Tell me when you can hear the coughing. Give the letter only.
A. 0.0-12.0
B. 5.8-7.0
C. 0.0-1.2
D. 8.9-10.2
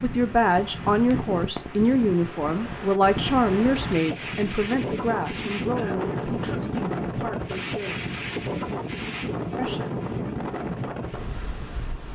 B.